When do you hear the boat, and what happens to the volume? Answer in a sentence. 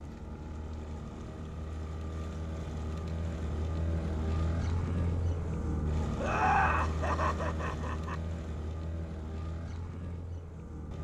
You can hear the boat from 0.0 to 10.9 s, getting louder then quieter.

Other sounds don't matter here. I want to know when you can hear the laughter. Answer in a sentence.
You can hear the laughter from 6.2 to 8.2 s.